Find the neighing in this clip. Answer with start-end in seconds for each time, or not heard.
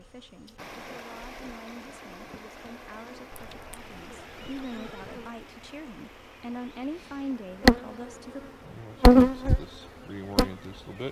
3.3-5.3.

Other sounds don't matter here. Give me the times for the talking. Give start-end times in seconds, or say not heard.
0.0-8.5.